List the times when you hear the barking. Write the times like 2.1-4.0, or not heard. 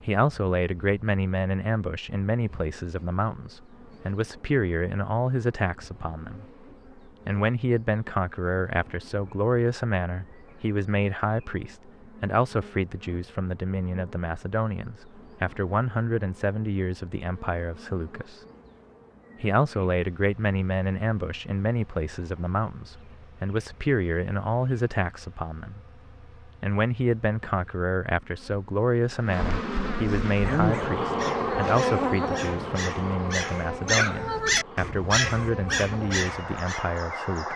30.4-36.9.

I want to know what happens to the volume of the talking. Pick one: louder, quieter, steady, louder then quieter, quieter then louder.
steady.